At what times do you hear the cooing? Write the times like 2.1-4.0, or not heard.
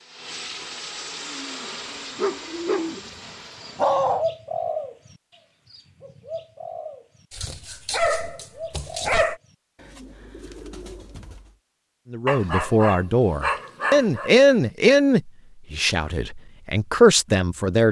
1.1-11.6.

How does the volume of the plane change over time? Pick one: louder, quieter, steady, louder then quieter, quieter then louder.
quieter.